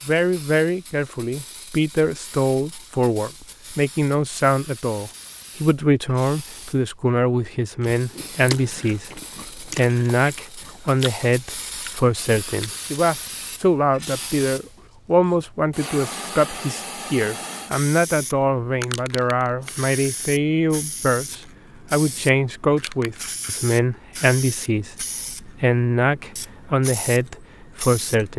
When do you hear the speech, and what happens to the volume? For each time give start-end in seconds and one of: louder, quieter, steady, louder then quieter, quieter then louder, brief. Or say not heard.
0.1-28.3 steady.